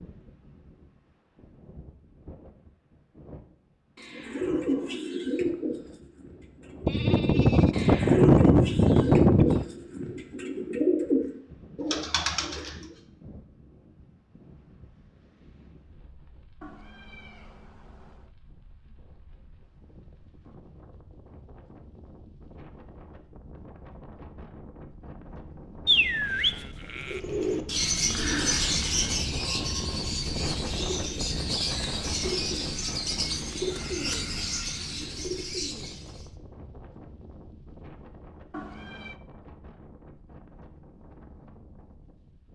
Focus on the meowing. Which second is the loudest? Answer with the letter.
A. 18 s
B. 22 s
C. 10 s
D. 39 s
D.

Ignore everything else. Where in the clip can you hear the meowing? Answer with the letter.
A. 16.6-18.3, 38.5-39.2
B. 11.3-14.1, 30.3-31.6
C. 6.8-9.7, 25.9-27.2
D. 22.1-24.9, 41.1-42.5
A.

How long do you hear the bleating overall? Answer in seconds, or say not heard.
4 s.